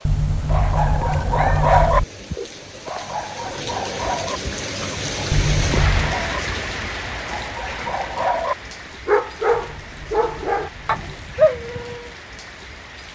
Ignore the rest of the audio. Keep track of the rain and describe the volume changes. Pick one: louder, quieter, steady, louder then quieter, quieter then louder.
louder then quieter.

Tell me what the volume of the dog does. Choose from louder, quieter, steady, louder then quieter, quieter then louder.
quieter then louder.